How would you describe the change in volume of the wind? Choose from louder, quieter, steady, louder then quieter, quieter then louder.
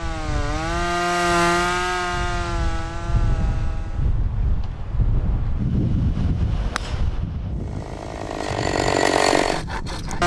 louder then quieter.